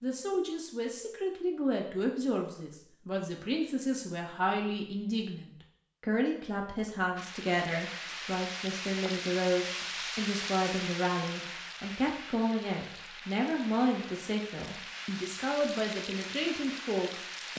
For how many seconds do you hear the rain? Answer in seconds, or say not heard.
10 s.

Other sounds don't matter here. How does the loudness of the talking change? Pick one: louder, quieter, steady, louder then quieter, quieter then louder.
steady.